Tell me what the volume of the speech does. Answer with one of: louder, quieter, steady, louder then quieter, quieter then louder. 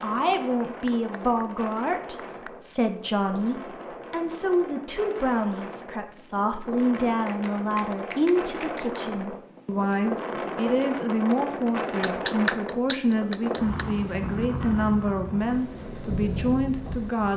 steady.